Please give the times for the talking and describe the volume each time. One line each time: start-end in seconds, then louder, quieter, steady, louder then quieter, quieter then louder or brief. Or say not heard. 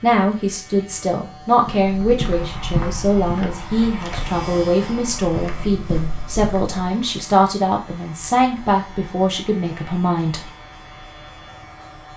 0.0-10.4 steady.